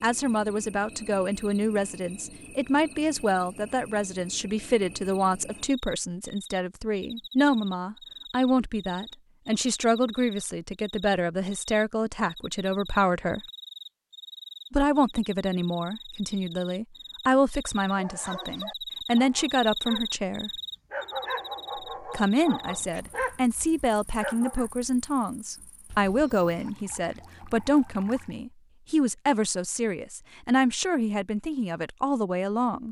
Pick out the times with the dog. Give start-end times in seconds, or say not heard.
17.8-20.1, 20.9-23.4, 24.2-24.6.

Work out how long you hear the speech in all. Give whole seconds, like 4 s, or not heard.
30 s.